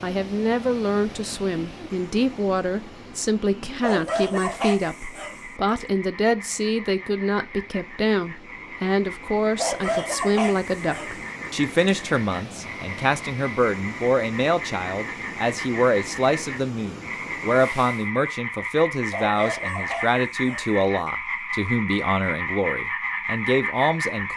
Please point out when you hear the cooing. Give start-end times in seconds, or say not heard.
not heard.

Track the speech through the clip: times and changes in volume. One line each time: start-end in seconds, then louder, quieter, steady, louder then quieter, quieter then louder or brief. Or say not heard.
0.0-24.3 steady.